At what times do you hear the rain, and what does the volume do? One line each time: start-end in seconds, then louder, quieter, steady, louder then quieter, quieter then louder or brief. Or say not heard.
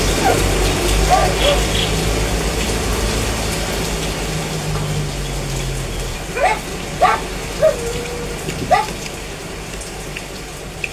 0.0-10.8 quieter.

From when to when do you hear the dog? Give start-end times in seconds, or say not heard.
0.2-1.7, 6.3-8.8.